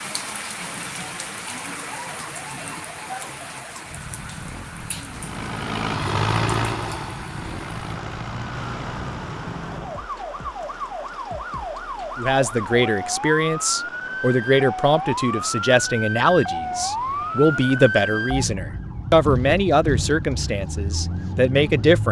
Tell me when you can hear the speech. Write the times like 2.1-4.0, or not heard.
12.2-22.0.